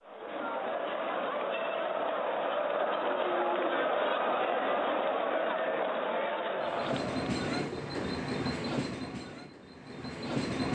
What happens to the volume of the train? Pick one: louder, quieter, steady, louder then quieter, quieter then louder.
quieter.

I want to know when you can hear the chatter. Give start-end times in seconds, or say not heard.
0.0-7.5.